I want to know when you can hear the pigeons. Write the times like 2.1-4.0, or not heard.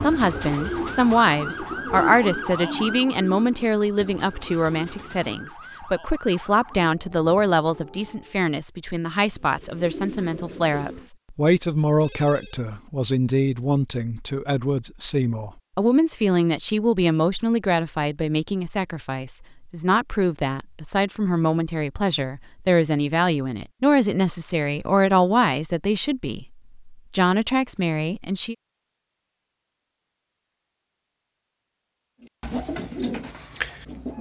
0.0-5.5, 9.2-11.1, 32.2-34.1.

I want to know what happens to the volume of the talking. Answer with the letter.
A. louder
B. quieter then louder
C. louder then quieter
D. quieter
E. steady
E.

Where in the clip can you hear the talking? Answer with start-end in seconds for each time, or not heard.
0.0-28.6.